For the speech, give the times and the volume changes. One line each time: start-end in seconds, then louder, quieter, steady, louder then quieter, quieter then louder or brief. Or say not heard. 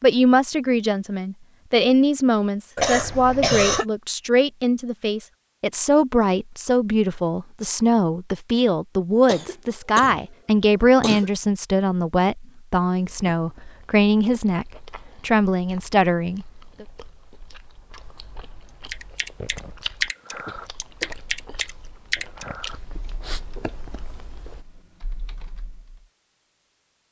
0.0-16.9 steady.